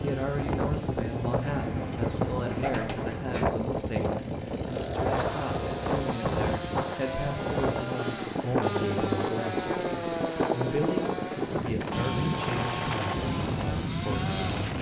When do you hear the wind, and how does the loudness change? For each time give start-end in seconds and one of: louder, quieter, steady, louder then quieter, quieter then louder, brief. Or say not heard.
0.0-14.7 steady.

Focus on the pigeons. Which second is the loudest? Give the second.
3 s.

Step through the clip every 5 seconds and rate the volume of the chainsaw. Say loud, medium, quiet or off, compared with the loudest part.
medium, loud, loud.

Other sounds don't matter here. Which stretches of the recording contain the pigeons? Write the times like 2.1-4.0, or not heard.
1.4-3.5.